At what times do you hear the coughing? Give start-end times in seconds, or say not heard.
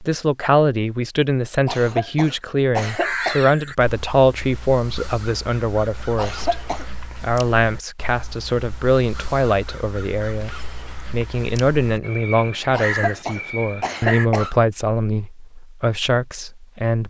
1.6-3.5, 6.2-6.8, 12.7-14.6.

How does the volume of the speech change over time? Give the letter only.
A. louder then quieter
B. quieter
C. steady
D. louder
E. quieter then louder
C.